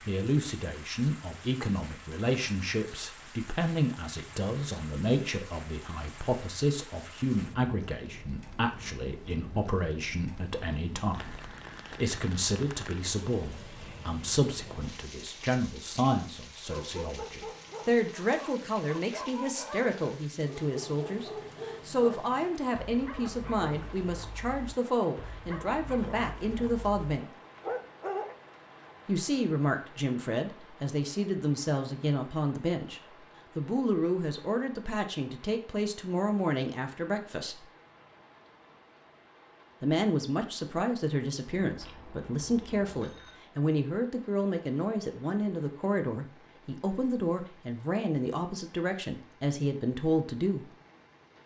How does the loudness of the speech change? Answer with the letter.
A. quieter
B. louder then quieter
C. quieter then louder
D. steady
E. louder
D.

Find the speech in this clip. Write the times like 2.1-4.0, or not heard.
0.0-27.2, 29.1-37.6, 39.8-50.6.